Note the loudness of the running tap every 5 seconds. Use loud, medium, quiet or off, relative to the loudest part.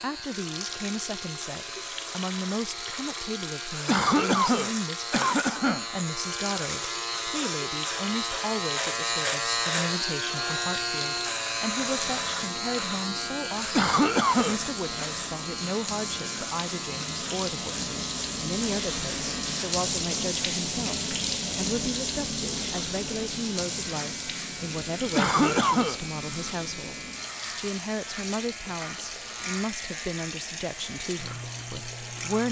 medium, medium, medium, loud, loud, medium, medium.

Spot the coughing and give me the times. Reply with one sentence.
You can hear the coughing from 3.9 to 5.8 s, from 13.7 to 15.1 s and from 25.1 to 26.0 s.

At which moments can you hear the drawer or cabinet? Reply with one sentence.
You can't hear the drawer or cabinet here.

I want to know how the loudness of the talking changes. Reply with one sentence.
The loudness of the talking stays about the same.